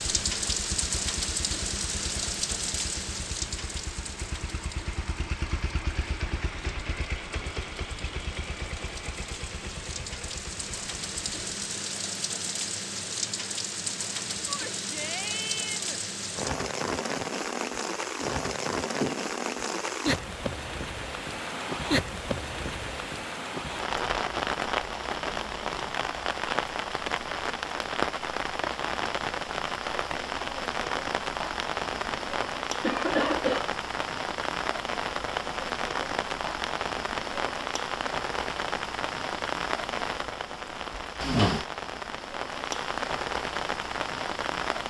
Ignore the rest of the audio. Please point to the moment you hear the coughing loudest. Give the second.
33 s.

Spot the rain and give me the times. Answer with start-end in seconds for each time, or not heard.
0.0-44.8.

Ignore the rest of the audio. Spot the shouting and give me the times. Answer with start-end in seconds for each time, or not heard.
14.4-16.0.